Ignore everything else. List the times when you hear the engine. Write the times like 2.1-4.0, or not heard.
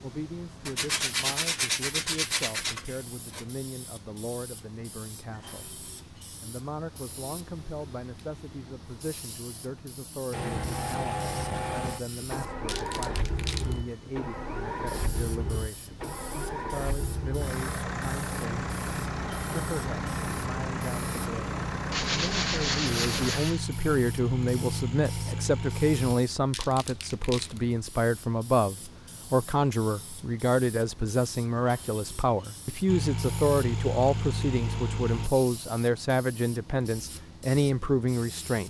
10.3-26.1, 32.9-35.3.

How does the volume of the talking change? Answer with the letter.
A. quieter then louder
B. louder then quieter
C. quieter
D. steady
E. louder
E.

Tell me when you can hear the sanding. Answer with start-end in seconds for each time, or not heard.
0.7-3.5, 21.9-23.6.